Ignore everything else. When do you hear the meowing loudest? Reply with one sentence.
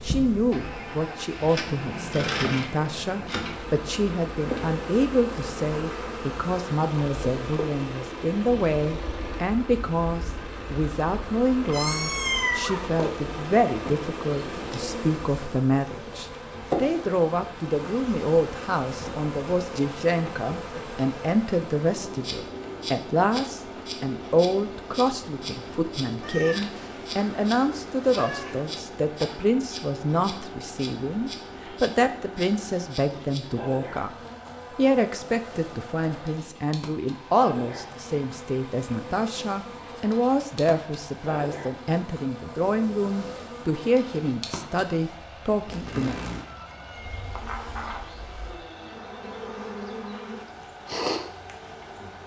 The loudest moment of the meowing is at 12 seconds.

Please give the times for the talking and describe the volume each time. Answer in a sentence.
The talking can be heard from 0.0 to 34.1 s, at a steady volume; and from 34.8 to 46.2 s, at a steady volume.